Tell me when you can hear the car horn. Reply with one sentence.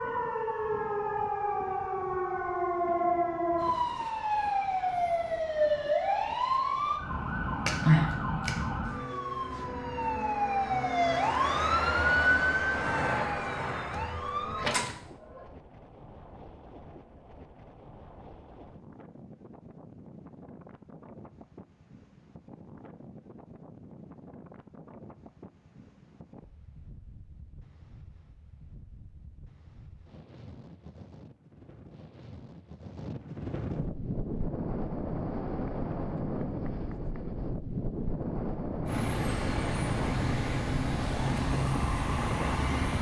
You can't hear the car horn here.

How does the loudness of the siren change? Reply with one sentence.
The volume of the siren stays about the same.